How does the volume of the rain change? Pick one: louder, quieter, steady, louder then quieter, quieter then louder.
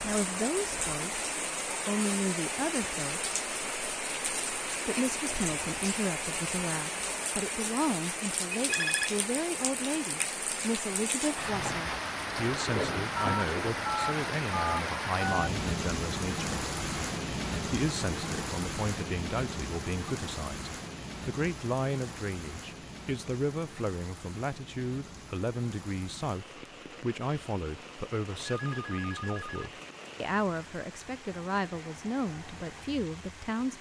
quieter.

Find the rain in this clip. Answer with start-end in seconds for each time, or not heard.
0.0-33.7.